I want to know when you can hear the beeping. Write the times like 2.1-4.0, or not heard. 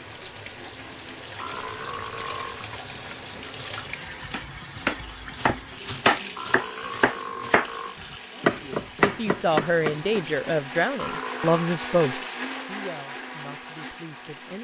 not heard.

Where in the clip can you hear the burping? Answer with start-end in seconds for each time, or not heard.
1.4-2.7, 6.3-8.0, 10.9-11.8.